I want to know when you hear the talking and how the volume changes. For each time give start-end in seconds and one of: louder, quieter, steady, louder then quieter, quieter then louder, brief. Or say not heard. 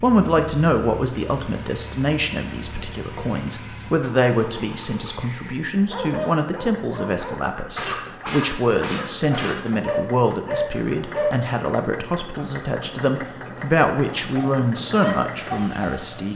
0.0-16.3 steady.